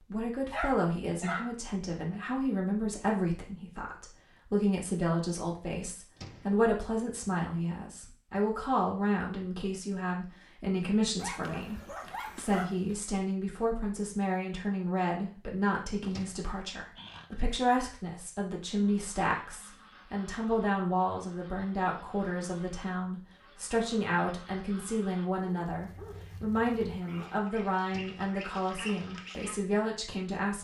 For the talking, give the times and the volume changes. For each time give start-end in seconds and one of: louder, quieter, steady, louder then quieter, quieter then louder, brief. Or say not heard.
0.1-30.5 steady.